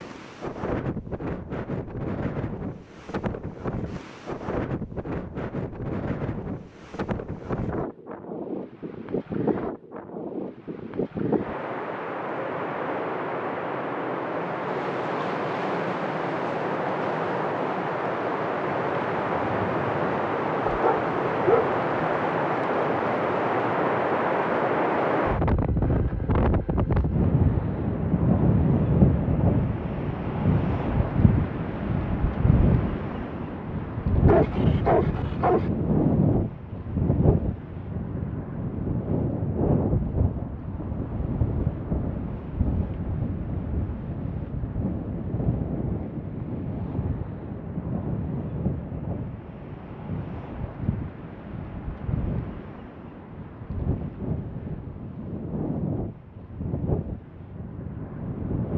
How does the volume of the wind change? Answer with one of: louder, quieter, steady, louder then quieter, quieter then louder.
louder then quieter.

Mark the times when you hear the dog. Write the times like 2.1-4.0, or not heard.
20.6-21.7, 34.2-35.7.